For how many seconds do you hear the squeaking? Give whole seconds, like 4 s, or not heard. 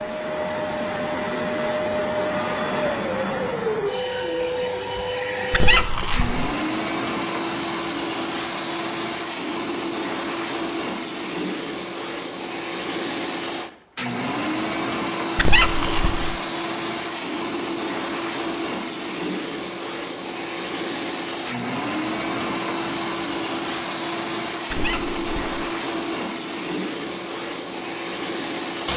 3 s.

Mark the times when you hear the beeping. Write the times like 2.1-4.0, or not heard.
not heard.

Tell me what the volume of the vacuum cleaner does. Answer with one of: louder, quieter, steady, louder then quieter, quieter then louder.
steady.